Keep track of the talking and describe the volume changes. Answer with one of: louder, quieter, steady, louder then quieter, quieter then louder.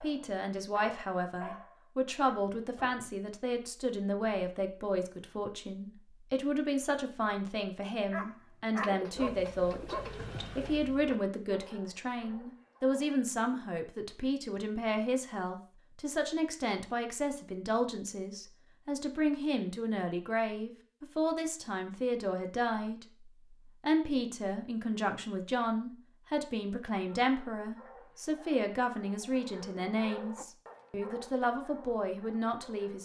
steady.